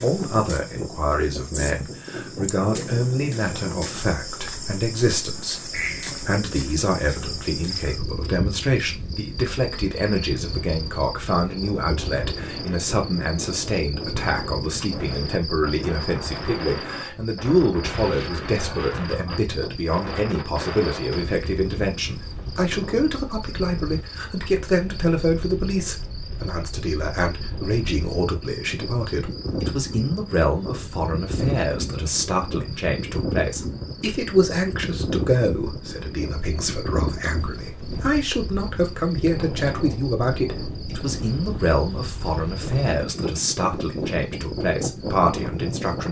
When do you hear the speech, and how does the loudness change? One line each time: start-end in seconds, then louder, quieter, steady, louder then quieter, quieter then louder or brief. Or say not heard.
0.0-46.0 steady.